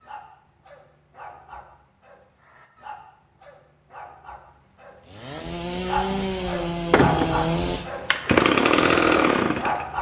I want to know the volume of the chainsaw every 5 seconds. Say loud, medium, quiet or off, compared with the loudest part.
off, loud.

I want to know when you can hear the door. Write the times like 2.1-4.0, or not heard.
6.9-7.5.